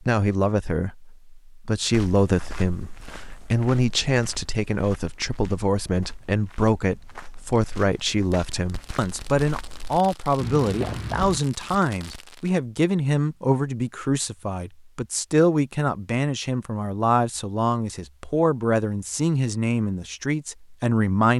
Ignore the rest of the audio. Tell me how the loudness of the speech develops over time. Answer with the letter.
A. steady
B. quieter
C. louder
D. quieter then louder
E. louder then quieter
A.